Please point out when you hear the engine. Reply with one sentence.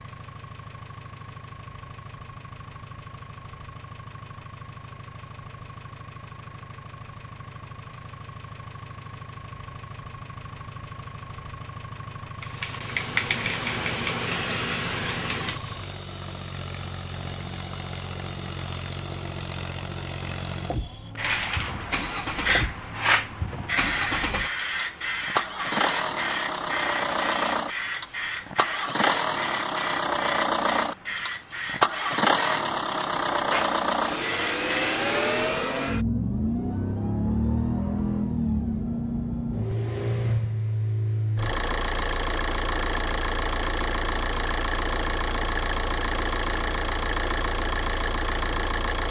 You can hear the engine from 0.0 to 49.0 s.